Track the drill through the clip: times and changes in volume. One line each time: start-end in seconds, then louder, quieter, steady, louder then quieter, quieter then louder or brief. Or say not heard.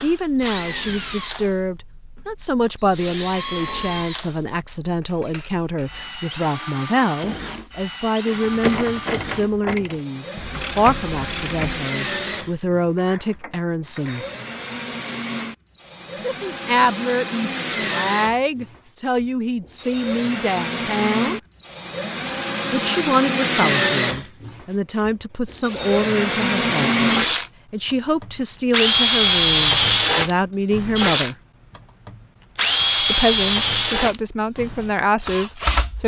0.0-36.0 louder.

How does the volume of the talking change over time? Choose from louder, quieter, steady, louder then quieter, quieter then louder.
steady.